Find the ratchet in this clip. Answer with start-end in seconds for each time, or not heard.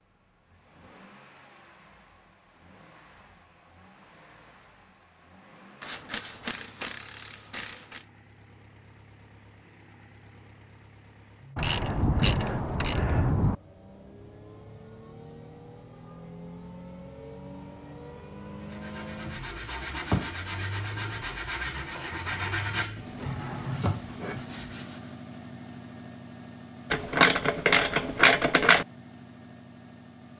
5.8-8.1, 11.6-13.6, 26.9-28.9.